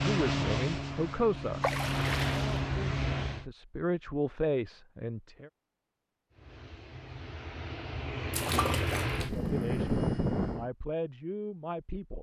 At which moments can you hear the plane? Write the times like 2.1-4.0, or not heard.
0.0-3.5, 6.3-10.7.